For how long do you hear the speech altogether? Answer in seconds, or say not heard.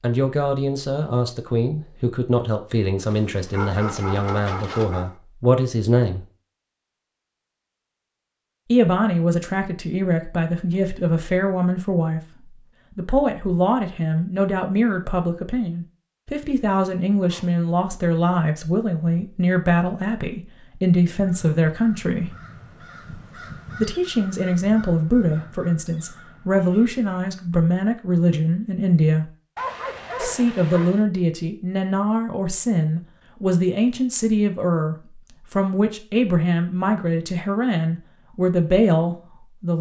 35 s.